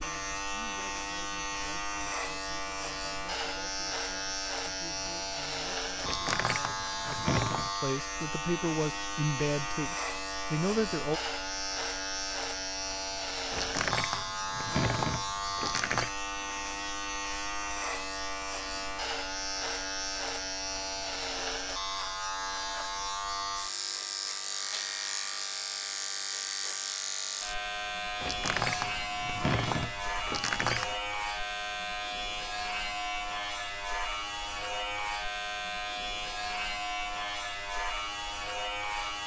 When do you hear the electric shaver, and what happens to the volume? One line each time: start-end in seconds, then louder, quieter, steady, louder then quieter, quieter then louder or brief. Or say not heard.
0.0-39.2 steady.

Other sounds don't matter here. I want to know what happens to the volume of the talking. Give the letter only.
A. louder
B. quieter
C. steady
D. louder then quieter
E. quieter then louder
A.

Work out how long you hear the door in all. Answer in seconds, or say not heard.
7 s.